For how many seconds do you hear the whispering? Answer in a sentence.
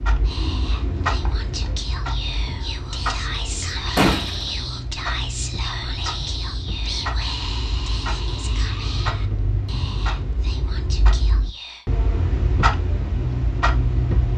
You can hear the whispering for 12 seconds altogether.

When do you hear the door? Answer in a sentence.
The door can be heard from 3.5 to 4.5 s.